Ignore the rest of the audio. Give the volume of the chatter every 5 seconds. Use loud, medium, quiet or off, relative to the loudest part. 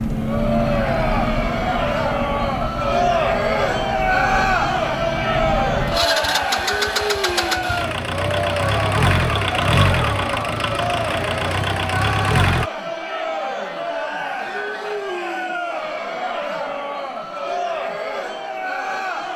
loud, loud, medium, medium.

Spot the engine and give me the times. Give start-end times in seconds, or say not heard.
0.0-12.7.